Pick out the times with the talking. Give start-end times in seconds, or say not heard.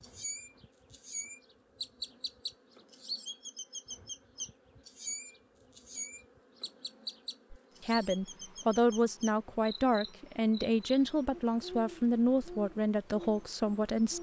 7.5-14.1.